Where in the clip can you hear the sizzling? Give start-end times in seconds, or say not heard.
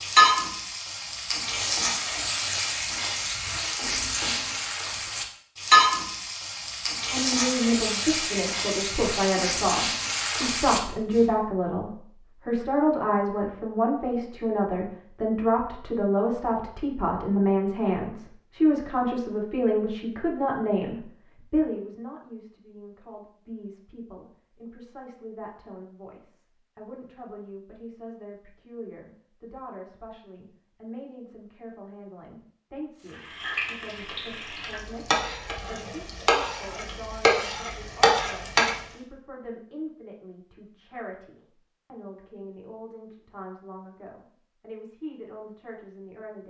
0.0-11.2, 33.0-38.8.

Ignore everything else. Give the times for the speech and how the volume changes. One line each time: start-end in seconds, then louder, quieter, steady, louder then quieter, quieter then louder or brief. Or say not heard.
7.1-46.4 quieter.